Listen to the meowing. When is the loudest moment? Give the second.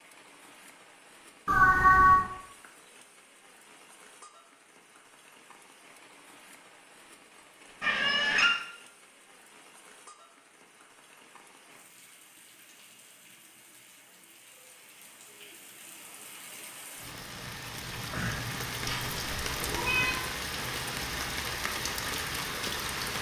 2 s.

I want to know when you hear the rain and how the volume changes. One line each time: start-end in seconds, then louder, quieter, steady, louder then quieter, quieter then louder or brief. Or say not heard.
0.0-23.1 louder.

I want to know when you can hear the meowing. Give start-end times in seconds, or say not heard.
1.4-2.2, 7.8-8.5, 18.9-20.2.